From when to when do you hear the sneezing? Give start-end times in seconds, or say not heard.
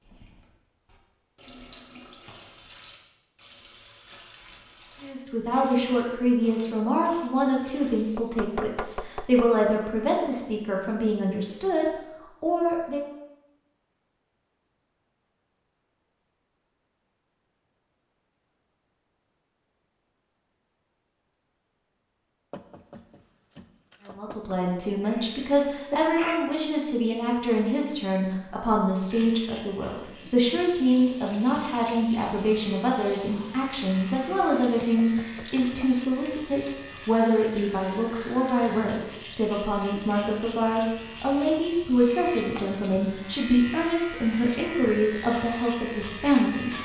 25.1-26.4.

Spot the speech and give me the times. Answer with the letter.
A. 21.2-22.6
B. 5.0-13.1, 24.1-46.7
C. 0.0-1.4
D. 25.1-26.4
B.